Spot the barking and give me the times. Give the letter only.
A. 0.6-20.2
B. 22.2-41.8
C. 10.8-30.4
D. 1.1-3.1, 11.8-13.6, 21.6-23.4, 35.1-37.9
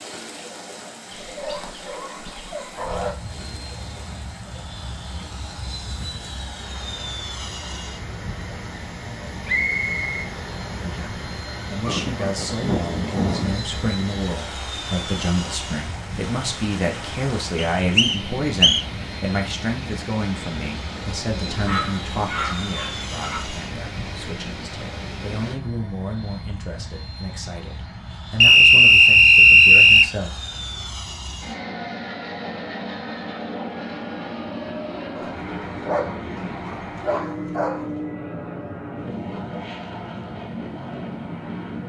D.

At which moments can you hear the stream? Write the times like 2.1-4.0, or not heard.
0.0-25.6.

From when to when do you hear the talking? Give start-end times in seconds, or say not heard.
10.8-30.4.